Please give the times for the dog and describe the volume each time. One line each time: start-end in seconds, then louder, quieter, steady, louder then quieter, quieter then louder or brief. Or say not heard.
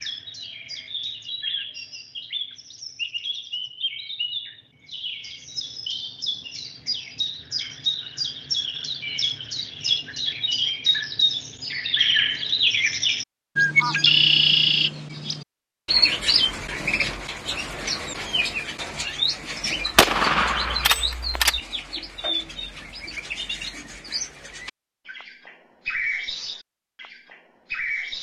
not heard.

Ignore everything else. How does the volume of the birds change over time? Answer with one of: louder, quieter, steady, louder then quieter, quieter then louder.
louder then quieter.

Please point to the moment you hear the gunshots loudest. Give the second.
20 s.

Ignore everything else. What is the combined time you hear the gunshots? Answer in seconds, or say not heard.
2 s.